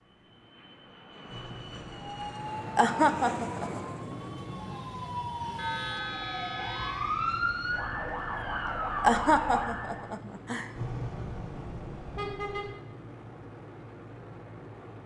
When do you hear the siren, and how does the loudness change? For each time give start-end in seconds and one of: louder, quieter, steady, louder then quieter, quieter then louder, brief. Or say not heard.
2.0-10.1 louder.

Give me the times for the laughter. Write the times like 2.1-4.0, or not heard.
2.8-3.8, 9.0-10.7.